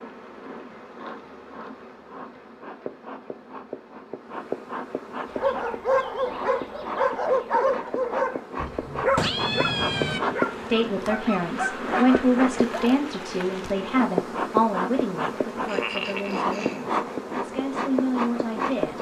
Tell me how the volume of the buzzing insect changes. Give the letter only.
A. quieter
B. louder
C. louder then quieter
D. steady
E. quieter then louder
B.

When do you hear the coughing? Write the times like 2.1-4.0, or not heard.
15.7-16.9.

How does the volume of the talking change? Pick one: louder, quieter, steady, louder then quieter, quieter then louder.
quieter then louder.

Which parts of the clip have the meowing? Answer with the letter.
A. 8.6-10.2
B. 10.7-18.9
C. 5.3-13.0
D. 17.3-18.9
A.